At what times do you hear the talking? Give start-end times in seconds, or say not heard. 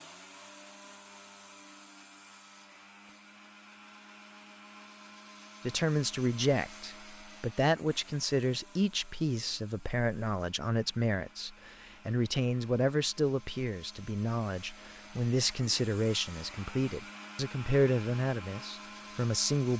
5.6-19.7.